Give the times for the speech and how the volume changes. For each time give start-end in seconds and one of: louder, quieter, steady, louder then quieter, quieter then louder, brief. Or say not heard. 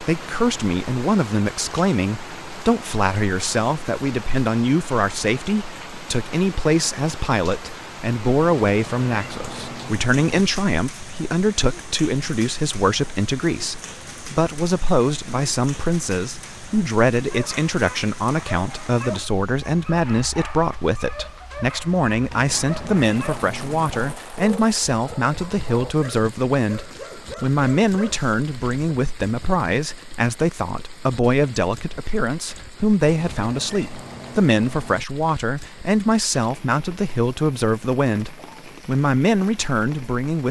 0.0-40.4 steady.